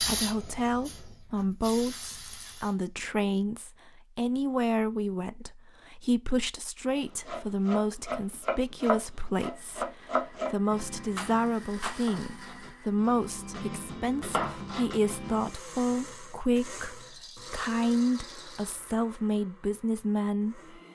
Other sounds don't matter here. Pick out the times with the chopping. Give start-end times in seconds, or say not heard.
7.0-15.6.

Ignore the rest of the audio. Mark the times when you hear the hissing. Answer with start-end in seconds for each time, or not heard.
0.0-3.0.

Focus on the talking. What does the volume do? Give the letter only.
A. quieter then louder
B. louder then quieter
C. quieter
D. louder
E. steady
E.